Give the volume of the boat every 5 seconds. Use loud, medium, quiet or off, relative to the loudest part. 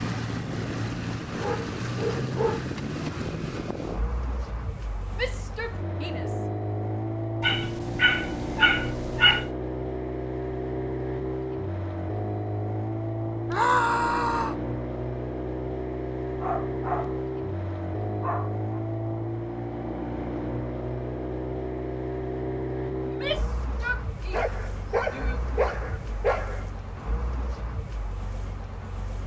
loud, loud, loud, loud, loud, medium.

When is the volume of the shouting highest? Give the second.
14 s.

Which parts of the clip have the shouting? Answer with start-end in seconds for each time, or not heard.
5.2-6.3, 13.5-14.6, 23.1-25.4.